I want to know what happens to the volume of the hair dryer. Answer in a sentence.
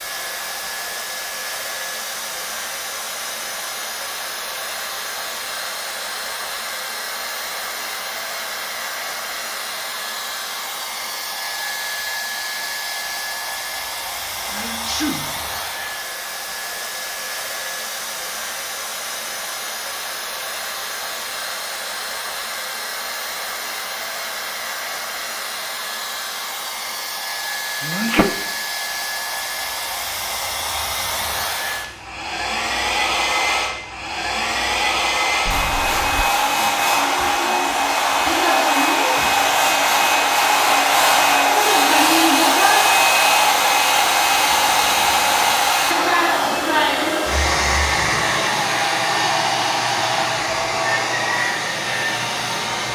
The volume of the hair dryer goes up.